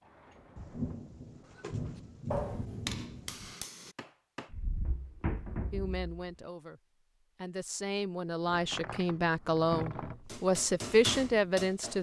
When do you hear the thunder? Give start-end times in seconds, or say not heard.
0.6-3.5.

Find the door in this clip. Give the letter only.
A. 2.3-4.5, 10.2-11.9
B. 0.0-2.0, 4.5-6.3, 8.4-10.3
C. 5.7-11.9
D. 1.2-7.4
B.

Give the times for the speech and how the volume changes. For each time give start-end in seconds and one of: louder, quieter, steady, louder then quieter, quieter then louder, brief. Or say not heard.
5.7-11.9 louder.